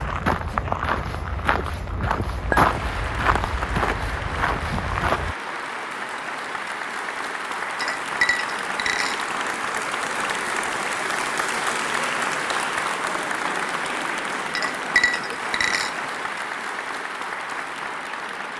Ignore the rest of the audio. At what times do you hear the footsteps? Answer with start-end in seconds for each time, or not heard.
0.0-5.3.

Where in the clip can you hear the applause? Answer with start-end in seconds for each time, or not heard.
2.3-18.5.